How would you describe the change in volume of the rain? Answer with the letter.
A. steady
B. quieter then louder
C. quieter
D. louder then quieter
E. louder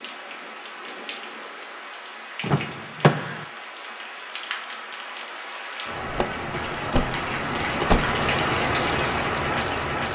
E.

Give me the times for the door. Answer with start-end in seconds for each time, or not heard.
2.4-3.5, 6.0-8.2.